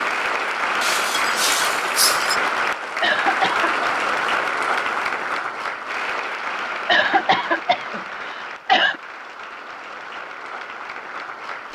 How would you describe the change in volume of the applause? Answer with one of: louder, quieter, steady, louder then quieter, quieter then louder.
quieter.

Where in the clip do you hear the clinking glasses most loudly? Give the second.
2 s.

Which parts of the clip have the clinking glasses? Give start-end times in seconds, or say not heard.
0.8-2.4.